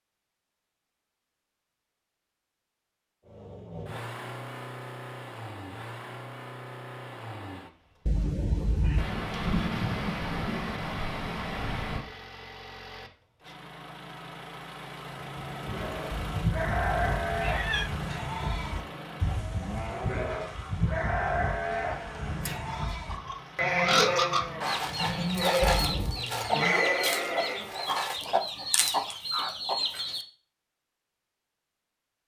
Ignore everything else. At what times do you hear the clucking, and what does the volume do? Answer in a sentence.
You can hear the clucking from 22.4 to 30.2 s, at a steady volume.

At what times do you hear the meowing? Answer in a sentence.
The meowing can be heard from 8.1 to 9.1 s, from 16.1 to 17.9 s and from 25.6 to 26.2 s.